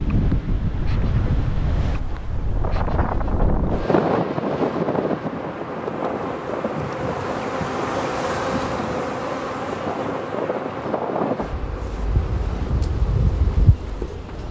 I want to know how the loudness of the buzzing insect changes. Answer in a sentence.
The volume of the buzzing insect goes up, then down.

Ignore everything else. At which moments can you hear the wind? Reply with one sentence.
The wind can be heard from 0.0 to 14.4 s.